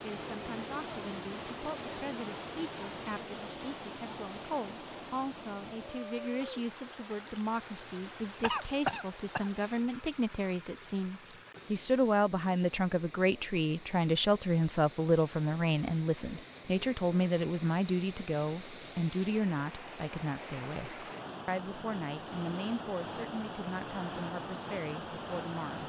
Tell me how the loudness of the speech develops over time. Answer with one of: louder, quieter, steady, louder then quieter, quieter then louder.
louder then quieter.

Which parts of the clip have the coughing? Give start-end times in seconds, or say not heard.
8.4-9.7.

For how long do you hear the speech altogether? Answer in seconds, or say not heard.
26 s.